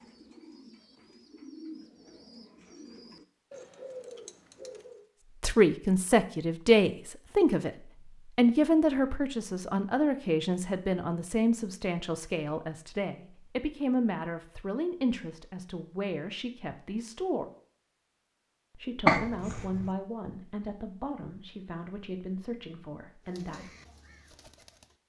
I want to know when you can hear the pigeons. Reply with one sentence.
You can hear the pigeons from 0.0 to 5.0 s and from 23.2 to 25.0 s.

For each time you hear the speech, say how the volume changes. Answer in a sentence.
You can hear the speech from 5.4 to 17.5 s, getting quieter; and from 18.8 to 23.8 s, getting quieter.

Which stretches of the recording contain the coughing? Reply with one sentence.
The coughing can be heard from 19.1 to 19.9 s.